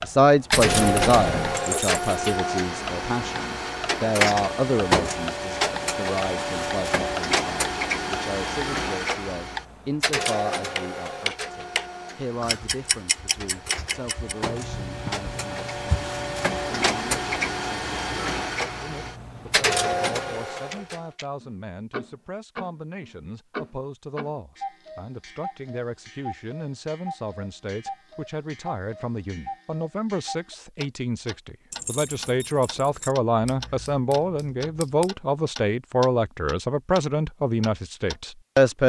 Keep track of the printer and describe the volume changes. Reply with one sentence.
The volume of the printer goes down, then up.